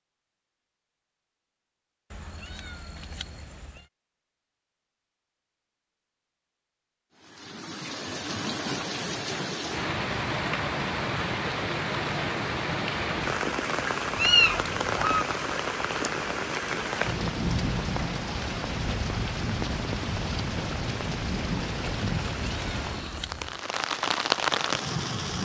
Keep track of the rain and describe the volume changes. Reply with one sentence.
The loudness of the rain stays about the same.